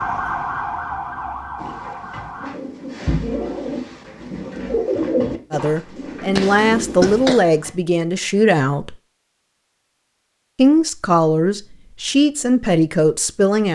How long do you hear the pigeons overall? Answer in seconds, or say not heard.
6 s.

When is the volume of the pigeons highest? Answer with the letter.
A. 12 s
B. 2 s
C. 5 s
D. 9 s
C.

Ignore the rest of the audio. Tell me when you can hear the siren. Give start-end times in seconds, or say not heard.
0.0-2.5.